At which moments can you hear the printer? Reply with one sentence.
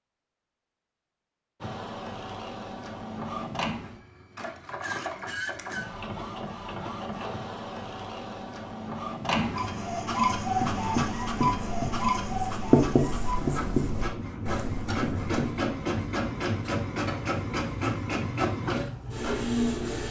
The printer can be heard from 1.6 to 20.0 s.